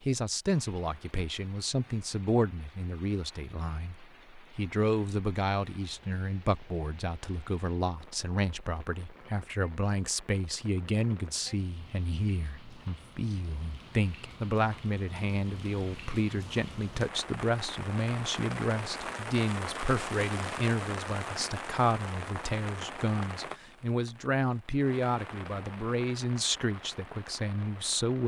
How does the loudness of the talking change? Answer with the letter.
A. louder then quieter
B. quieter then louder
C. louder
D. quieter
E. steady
E.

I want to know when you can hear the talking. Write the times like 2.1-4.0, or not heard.
0.0-28.2.